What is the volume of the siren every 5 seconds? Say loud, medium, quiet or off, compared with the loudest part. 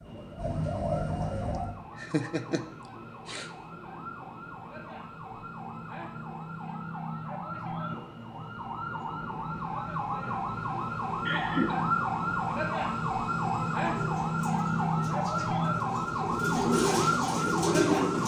quiet, medium, loud, loud.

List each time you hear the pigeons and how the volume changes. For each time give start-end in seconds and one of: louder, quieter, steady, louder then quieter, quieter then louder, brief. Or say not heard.
0.0-1.8 brief
14.0-18.2 louder.